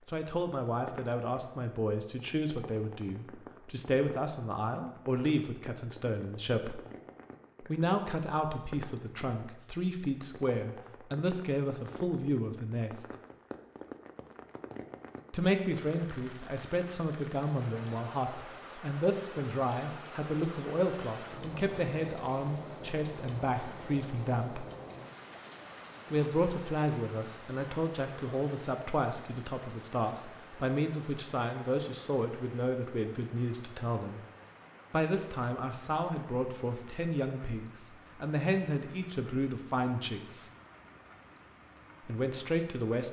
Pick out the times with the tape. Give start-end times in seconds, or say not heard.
not heard.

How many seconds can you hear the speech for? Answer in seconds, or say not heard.
36 s.